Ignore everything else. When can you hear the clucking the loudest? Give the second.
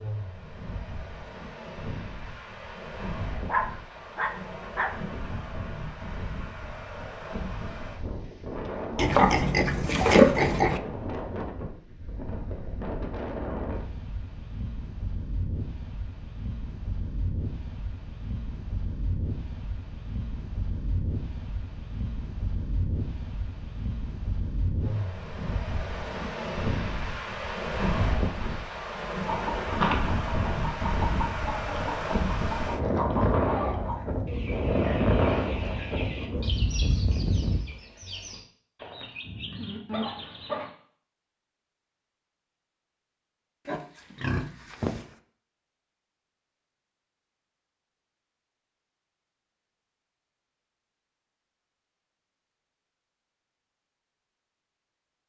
30 s.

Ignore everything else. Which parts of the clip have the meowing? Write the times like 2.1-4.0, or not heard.
not heard.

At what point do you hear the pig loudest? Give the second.
10 s.